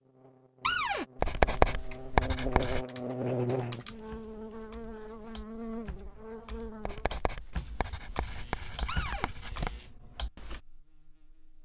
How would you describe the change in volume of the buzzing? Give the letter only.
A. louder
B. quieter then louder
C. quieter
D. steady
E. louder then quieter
E.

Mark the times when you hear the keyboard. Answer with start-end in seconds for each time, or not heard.
1.8-10.6.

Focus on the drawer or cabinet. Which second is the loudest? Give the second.
1 s.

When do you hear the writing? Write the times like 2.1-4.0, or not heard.
1.1-2.9, 6.8-9.8.